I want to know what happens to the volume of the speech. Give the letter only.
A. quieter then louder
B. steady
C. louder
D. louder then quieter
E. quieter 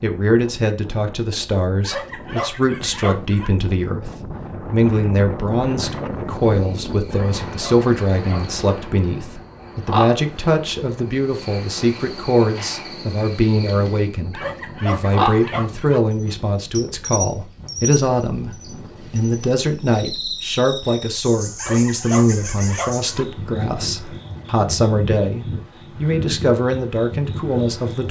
B.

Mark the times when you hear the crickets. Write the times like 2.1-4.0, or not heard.
6.3-28.0.